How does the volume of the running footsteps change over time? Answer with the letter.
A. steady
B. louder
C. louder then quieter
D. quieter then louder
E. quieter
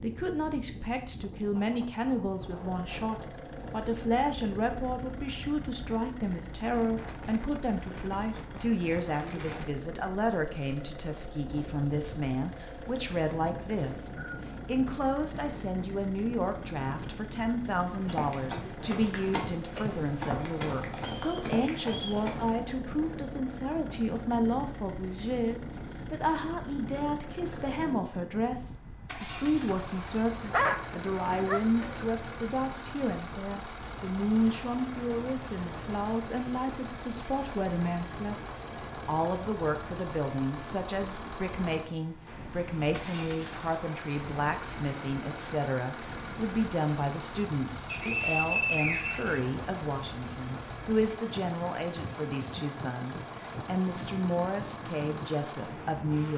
A.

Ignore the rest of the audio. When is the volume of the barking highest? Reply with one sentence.
The loudest moment of the barking is at 31 seconds.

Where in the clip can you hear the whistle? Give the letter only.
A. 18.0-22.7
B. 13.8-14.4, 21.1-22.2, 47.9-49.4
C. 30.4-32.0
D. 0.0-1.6
B.